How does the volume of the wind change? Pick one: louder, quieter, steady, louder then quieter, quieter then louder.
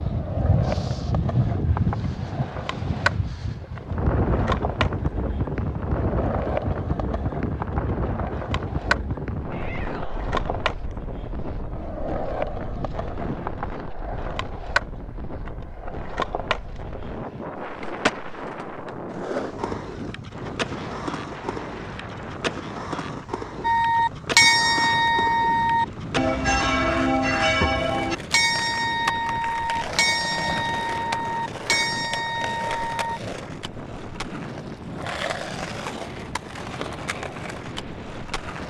quieter.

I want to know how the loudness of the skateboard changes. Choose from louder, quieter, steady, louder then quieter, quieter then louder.
steady.